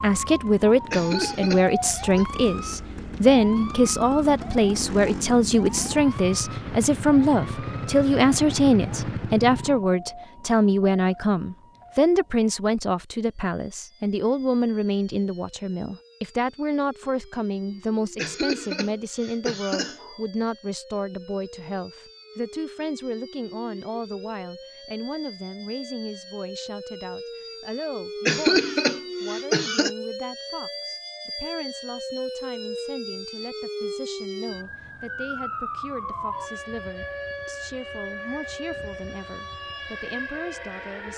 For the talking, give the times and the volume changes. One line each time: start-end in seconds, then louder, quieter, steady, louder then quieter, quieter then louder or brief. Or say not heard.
0.0-41.1 quieter.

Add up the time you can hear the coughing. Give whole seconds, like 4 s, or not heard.
5 s.